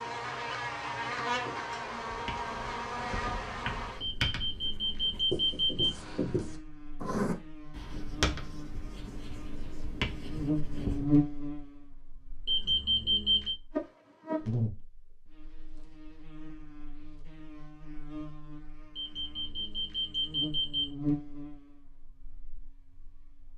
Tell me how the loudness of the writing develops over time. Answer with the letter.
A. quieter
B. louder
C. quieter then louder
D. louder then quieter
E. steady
D.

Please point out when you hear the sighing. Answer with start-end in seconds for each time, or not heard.
not heard.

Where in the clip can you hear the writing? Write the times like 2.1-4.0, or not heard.
2.0-11.1.